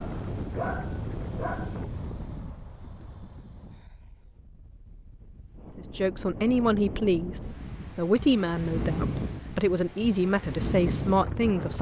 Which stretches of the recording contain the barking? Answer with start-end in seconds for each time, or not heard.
0.0-1.8.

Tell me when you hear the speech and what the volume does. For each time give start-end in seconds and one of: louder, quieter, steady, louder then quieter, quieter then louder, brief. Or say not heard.
5.8-11.7 steady.